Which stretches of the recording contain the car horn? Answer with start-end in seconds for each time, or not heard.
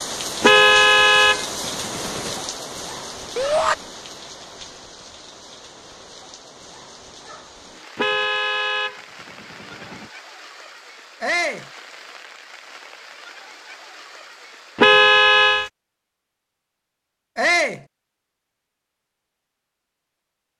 0.4-2.4, 8.0-10.1, 14.8-15.7.